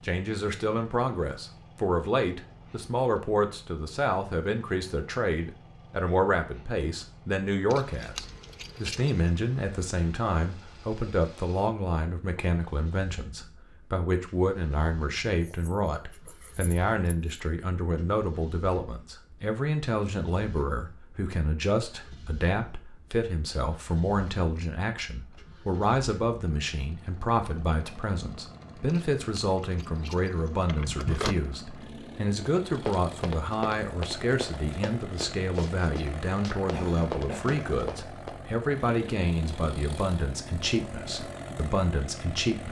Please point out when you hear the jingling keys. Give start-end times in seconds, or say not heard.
7.7-9.3, 15.4-17.4, 28.9-31.4.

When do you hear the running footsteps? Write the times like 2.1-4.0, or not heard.
32.7-38.4.